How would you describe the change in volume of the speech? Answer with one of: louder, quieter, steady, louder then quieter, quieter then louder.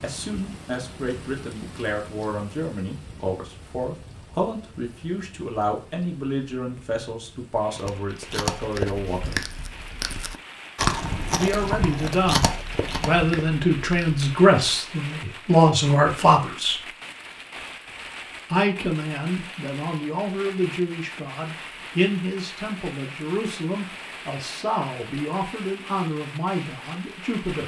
louder then quieter.